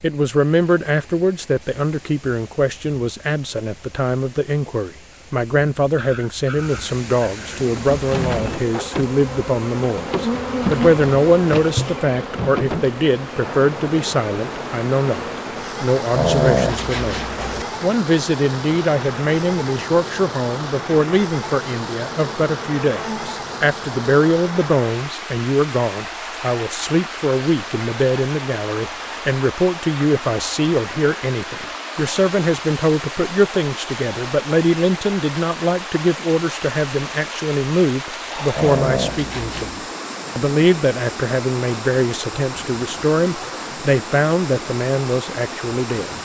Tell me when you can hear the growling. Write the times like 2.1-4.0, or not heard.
6.0-7.5, 16.1-17.6, 38.5-39.8.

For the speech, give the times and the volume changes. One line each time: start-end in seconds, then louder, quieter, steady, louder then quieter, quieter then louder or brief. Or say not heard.
0.0-46.1 steady.